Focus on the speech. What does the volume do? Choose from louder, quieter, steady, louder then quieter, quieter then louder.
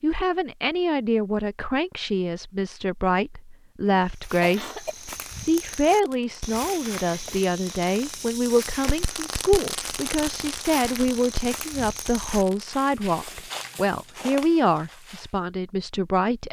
steady.